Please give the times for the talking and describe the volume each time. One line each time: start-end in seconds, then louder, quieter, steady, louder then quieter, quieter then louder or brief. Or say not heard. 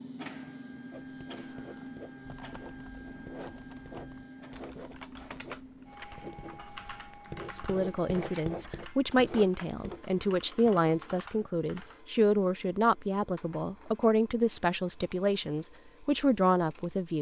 7.5-17.1 steady.